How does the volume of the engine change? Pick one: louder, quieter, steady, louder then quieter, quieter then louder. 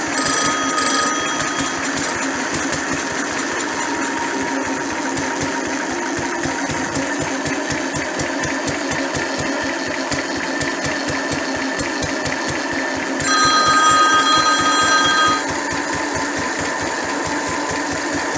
steady.